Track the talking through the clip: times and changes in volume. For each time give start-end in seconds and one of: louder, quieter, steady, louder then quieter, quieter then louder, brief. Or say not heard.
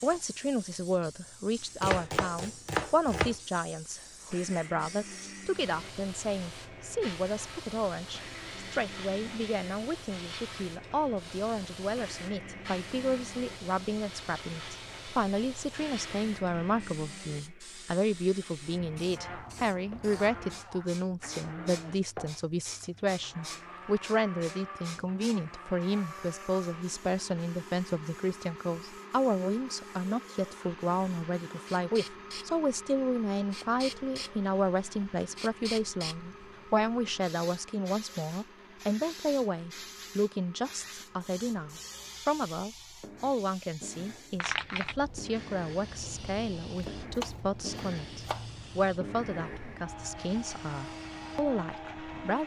0.0-52.4 steady.